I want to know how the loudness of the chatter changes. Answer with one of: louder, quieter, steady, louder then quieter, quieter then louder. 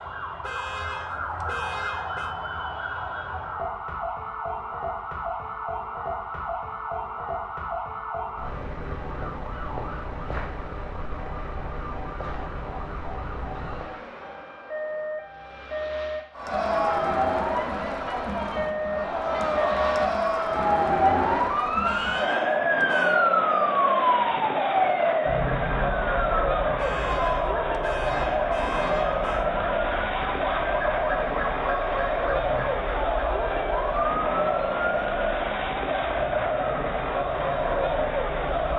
steady.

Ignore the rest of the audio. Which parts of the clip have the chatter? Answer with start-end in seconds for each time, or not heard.
16.4-38.7.